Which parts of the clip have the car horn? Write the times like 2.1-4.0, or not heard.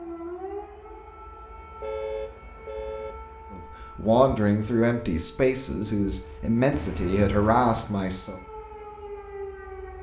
1.8-3.1, 6.7-7.9.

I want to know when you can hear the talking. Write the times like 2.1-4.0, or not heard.
3.5-8.4.